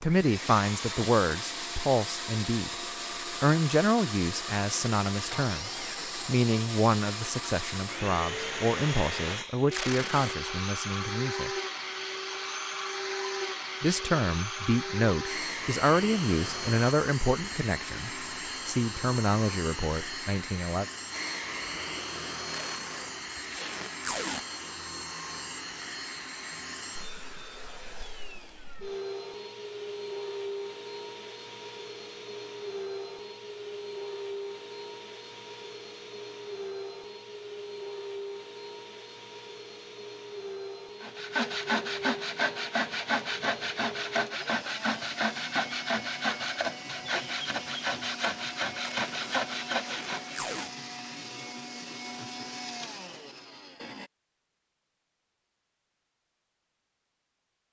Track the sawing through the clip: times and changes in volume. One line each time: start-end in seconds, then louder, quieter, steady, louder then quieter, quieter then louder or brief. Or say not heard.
41.0-50.4 steady.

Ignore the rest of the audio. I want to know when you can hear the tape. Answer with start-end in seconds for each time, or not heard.
9.7-10.3, 22.4-24.4, 48.9-50.8.